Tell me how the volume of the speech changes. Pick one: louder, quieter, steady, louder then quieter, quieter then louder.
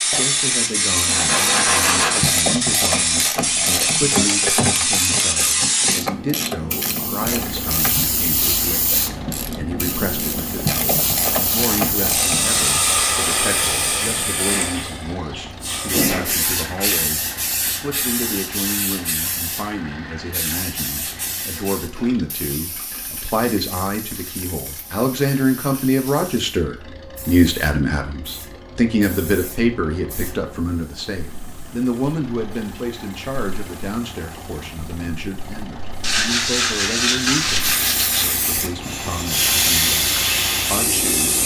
louder then quieter.